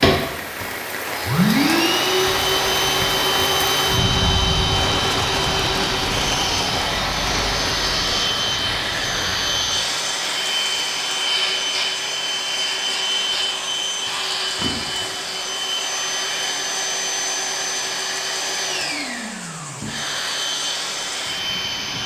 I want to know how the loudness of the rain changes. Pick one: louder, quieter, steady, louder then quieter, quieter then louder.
quieter.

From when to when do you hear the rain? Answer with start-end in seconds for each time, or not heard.
0.0-22.0.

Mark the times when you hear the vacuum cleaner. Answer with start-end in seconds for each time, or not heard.
0.0-22.0.